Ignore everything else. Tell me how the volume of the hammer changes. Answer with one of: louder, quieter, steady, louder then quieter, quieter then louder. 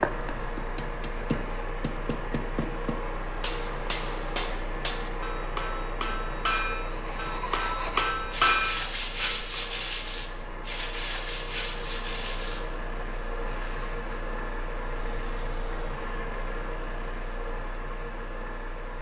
louder.